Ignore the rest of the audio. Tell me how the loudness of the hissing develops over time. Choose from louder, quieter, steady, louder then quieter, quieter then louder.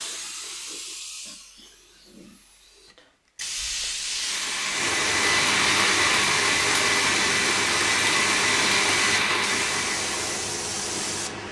louder.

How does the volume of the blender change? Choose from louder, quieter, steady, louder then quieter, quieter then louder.
steady.